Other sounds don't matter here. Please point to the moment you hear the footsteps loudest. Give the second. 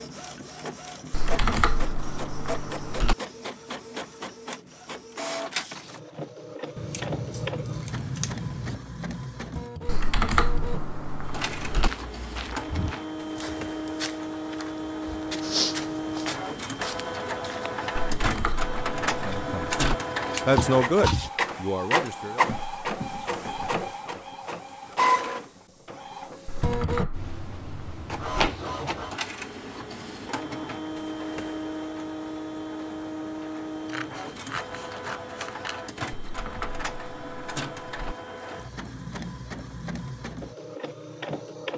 16 s.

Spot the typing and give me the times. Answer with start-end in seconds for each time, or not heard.
1.1-3.1, 9.8-11.9, 17.9-19.9, 26.4-28.2, 36.1-38.1.